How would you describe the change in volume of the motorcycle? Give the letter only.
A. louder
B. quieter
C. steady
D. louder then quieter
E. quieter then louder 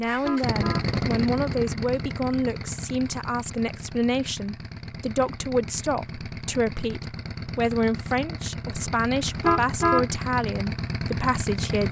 E.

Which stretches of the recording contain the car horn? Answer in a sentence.
The car horn can be heard from 0.1 to 0.8 s and from 9.2 to 10.1 s.